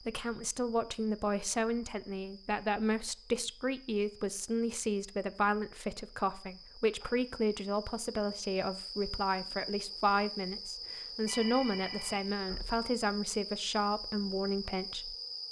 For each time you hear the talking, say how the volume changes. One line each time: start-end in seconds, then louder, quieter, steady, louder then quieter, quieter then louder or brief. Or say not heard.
0.0-15.2 steady.